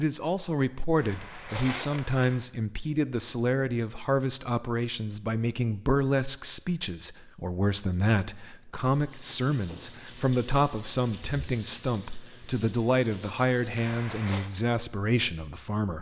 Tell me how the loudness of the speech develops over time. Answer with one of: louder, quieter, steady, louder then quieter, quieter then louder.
steady.